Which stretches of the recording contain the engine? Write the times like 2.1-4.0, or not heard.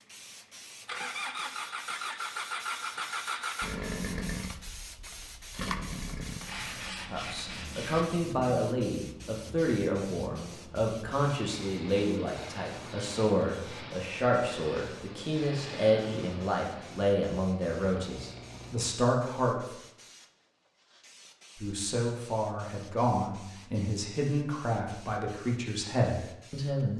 0.0-18.9.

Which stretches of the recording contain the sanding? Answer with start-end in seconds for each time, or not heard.
6.4-8.1.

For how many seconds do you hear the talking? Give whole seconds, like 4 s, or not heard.
18 s.